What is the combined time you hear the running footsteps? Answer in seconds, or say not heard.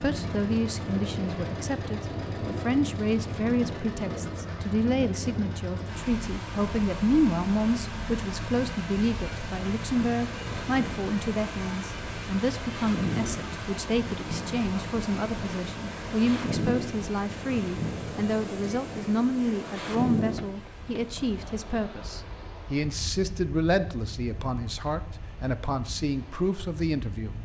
not heard.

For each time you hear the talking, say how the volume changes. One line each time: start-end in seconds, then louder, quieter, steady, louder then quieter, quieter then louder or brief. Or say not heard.
0.0-27.4 steady.